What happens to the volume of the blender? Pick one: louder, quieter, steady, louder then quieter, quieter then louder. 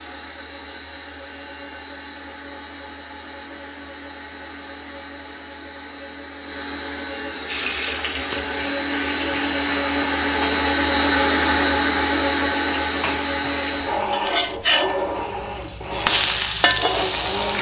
louder then quieter.